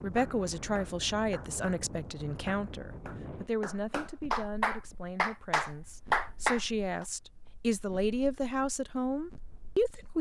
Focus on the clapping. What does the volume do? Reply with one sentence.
The volume of the clapping goes up.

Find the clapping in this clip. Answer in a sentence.
You can hear the clapping from 0.1 to 7.0 s.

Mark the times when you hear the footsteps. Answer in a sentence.
The footsteps can't be heard in this clip.